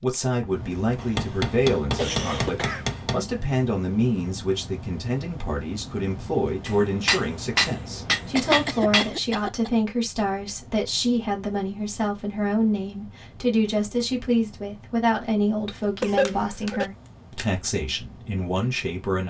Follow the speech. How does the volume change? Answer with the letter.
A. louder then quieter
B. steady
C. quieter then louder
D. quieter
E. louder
B.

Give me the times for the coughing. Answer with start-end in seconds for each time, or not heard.
1.9-2.9, 8.3-9.7, 16.0-16.9.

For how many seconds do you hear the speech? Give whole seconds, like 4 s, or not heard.
19 s.